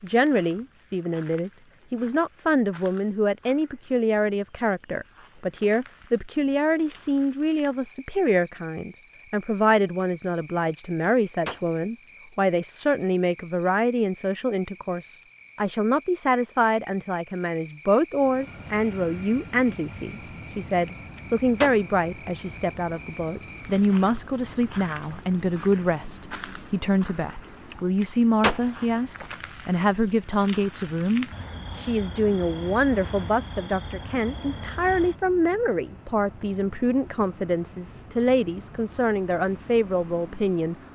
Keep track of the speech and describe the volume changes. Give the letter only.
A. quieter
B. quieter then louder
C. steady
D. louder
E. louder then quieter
C.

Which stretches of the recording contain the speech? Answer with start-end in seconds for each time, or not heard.
0.0-40.8.